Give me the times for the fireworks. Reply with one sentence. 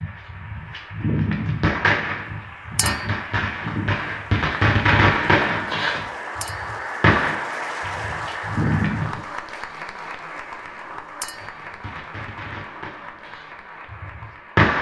The fireworks can be heard from 0.0 to 9.2 s and from 11.4 to 14.7 s.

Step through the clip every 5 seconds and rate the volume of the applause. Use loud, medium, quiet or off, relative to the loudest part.
medium, loud, medium.